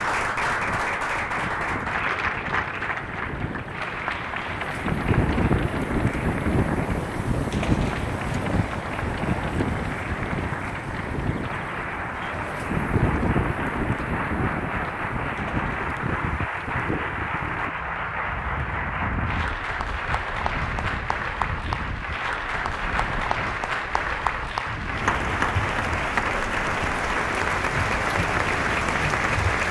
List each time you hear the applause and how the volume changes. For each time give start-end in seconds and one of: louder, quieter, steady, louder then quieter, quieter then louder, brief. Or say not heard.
0.0-29.6 quieter then louder.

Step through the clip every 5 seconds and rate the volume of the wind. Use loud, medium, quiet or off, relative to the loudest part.
medium, loud, loud, medium, quiet, quiet.